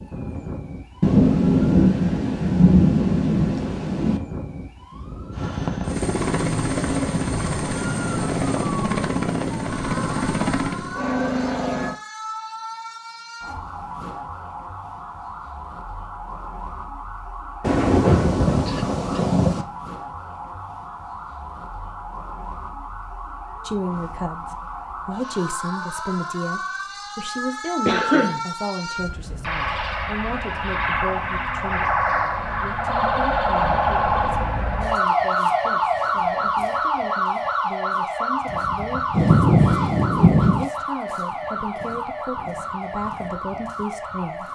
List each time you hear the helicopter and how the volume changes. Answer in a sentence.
You can hear the helicopter from 5.3 to 11.9 s, at a steady volume.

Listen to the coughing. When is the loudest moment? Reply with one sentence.
The loudest moment of the coughing is at 28 seconds.